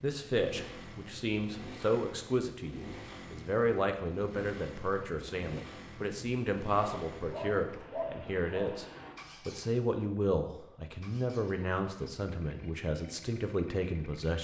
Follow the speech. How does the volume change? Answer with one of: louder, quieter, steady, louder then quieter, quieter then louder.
steady.